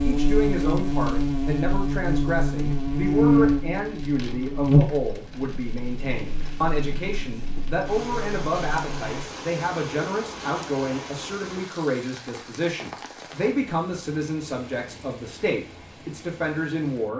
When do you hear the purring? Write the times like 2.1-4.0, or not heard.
not heard.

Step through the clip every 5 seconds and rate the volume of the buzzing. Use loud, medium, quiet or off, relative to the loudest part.
loud, quiet, off, off.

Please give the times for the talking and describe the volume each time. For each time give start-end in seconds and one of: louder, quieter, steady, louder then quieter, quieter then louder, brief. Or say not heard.
0.0-17.1 steady.